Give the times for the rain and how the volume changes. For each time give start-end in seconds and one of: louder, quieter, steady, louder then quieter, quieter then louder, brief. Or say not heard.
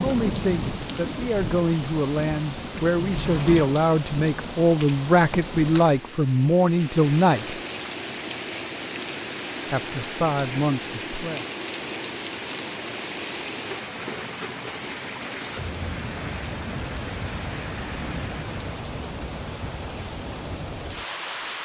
0.0-21.6 steady.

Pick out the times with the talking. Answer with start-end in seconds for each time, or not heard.
0.0-7.6, 9.7-11.4.